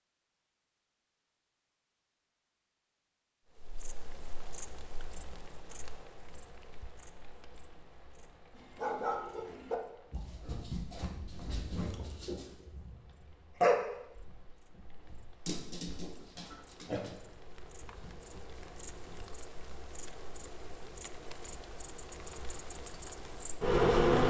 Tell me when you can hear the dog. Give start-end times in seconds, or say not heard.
8.6-12.9, 13.6-19.4.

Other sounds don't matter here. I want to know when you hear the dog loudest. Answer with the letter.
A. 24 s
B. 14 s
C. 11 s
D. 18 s
B.